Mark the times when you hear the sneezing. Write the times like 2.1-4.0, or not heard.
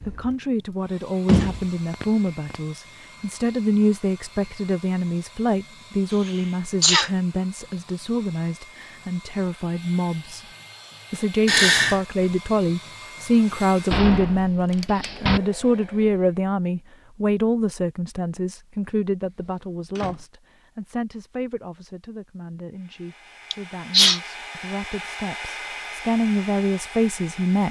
6.2-7.1, 11.4-12.0, 23.5-24.2.